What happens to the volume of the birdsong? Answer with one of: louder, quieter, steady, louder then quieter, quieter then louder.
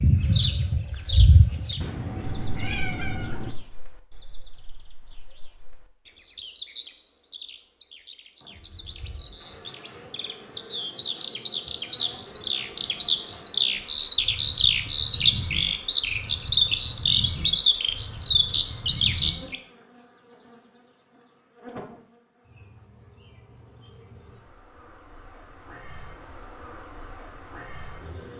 quieter then louder.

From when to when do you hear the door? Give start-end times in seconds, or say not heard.
not heard.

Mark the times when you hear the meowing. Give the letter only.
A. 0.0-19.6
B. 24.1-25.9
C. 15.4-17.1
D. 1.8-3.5
D.